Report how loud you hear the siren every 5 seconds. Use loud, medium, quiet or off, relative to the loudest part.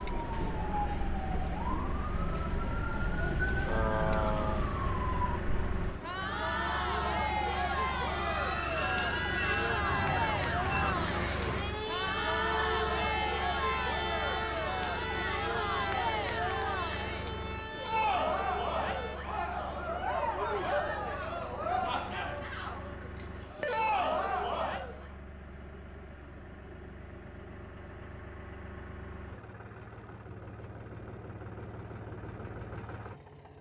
loud, loud, loud, medium, off, off, off.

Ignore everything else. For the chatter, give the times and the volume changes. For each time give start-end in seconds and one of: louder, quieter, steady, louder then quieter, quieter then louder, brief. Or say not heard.
0.0-25.1 louder.